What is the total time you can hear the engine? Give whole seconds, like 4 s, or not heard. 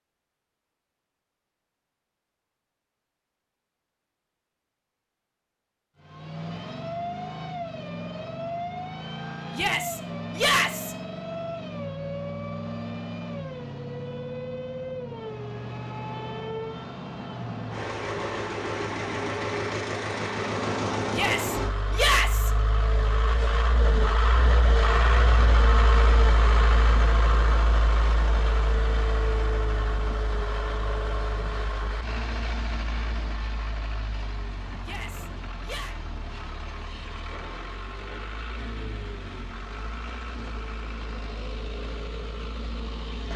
37 s.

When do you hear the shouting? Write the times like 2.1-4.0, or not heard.
9.5-10.9, 21.1-22.5, 34.8-36.0.